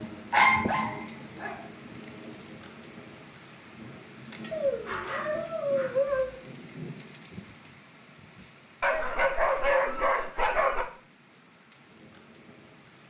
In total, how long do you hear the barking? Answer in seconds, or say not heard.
5 s.